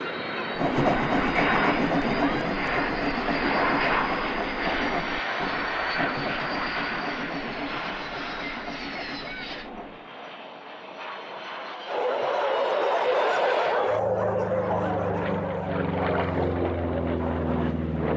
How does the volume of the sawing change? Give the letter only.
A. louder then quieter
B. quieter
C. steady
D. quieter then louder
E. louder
B.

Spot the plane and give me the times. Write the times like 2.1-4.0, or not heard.
0.0-18.1.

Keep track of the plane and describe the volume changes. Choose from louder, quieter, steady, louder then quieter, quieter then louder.
quieter then louder.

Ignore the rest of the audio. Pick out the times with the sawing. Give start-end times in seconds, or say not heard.
0.6-10.1.